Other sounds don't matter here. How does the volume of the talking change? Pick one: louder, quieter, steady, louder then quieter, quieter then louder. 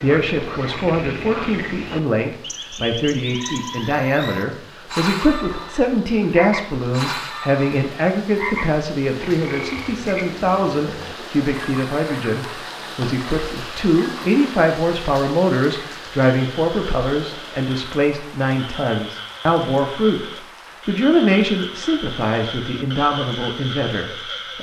steady.